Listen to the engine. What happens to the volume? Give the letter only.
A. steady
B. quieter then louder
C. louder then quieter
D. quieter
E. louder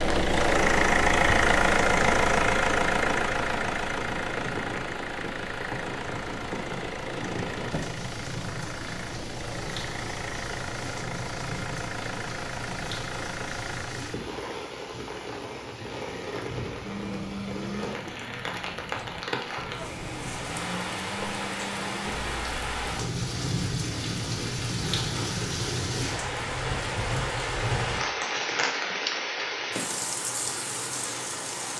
D.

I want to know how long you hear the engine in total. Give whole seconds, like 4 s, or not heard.
14 s.